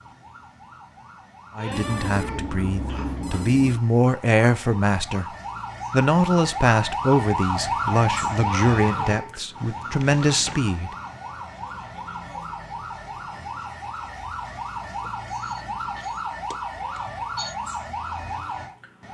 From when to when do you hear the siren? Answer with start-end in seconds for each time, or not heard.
0.0-19.0.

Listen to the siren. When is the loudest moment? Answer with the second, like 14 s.
8 s.